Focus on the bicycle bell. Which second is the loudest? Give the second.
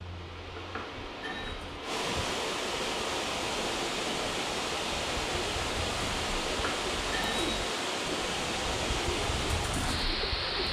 7 s.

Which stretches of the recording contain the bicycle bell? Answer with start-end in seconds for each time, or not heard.
0.6-1.6, 6.5-7.6.